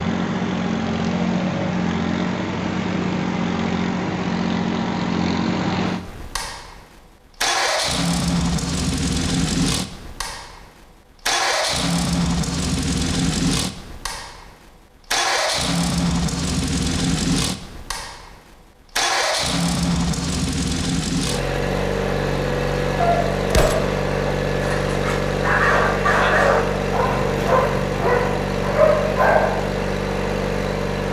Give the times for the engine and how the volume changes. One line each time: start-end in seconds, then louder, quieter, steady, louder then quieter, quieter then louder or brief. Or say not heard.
0.0-31.0 steady.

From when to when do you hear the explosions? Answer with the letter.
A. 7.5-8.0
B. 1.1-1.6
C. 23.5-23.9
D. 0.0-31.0
C.